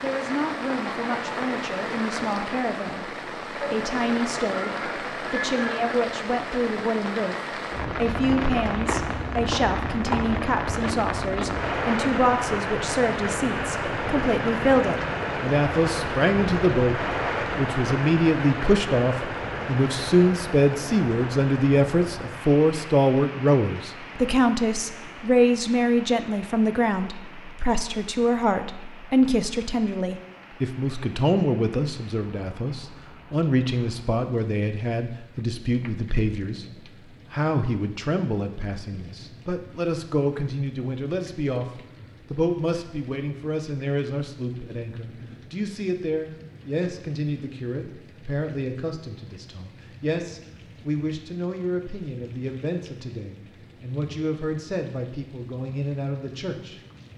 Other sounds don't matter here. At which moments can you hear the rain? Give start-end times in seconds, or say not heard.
0.0-57.1.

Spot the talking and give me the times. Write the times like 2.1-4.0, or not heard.
0.0-57.1.